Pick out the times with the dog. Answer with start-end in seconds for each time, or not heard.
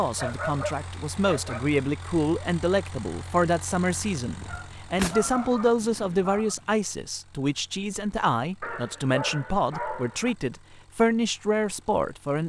0.1-1.7, 4.5-6.5, 8.6-10.3.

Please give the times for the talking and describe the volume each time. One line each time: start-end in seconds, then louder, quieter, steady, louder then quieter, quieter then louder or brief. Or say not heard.
0.0-12.4 steady.